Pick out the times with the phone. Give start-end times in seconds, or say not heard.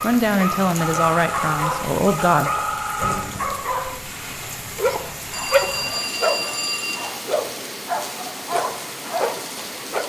0.8-3.4, 5.3-7.0.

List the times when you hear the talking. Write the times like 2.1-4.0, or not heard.
0.0-2.5.